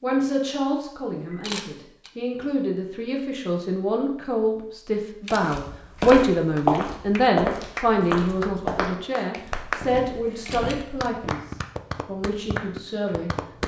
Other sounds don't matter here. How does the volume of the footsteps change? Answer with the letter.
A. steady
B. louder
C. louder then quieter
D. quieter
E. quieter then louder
D.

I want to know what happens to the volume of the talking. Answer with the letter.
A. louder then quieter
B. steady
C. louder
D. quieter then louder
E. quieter
A.